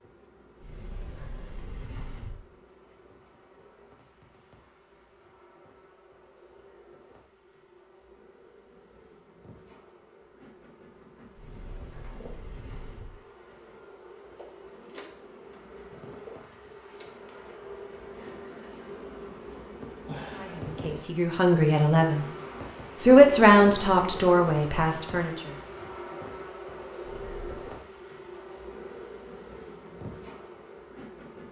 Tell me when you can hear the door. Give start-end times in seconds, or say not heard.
0.6-2.4, 11.3-13.2, 27.1-27.7.